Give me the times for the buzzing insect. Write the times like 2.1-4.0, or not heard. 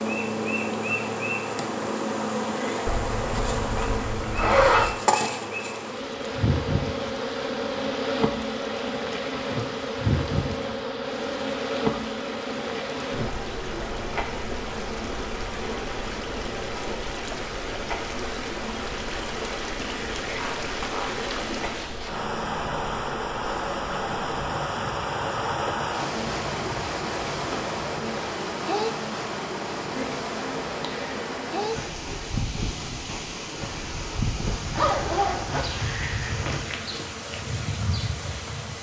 0.0-38.7.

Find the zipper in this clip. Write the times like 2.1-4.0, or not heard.
2.9-4.9, 20.2-22.2, 34.6-36.6.